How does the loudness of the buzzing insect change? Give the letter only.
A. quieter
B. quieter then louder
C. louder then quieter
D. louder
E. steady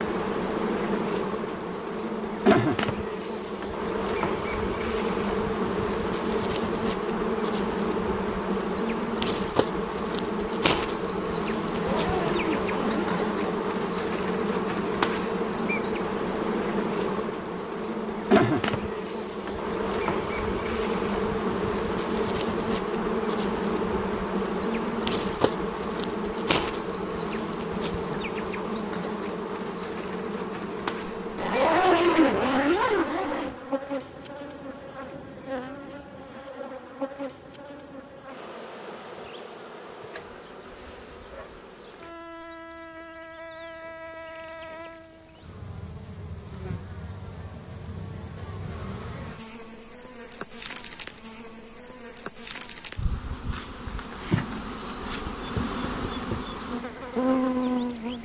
B.